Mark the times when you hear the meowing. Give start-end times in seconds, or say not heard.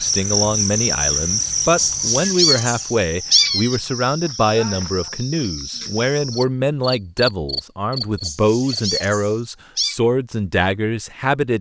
1.8-3.8, 8.2-10.0.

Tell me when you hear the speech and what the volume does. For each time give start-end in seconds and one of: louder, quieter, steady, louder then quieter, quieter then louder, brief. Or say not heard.
0.0-11.5 steady.